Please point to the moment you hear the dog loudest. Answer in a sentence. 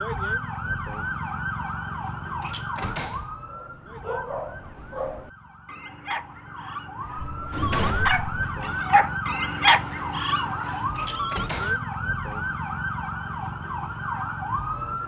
The volume of the dog peaks at 10 seconds.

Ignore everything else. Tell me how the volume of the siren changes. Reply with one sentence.
The volume of the siren goes down, then up.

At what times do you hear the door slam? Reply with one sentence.
The door slam can be heard from 2.4 to 3.4 s, from 7.2 to 8.2 s and from 10.9 to 11.8 s.